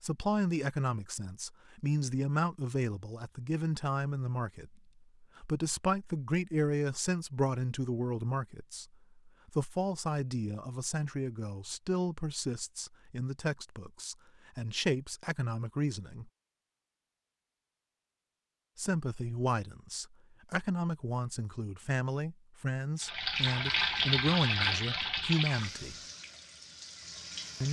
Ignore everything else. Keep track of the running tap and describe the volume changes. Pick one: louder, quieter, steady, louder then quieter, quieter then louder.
quieter.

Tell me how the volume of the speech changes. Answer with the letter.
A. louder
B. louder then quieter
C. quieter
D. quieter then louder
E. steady
E.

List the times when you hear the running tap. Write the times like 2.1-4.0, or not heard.
23.0-27.6.